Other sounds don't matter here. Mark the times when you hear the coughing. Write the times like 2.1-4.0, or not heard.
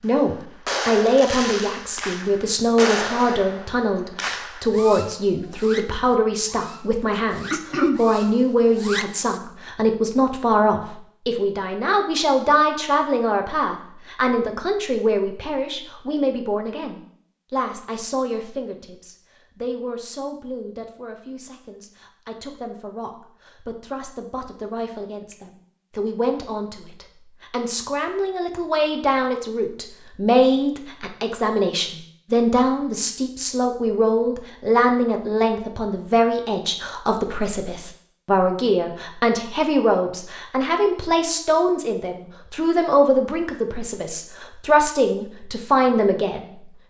7.5-8.0.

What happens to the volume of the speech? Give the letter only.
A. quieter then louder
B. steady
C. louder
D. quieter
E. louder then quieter
A.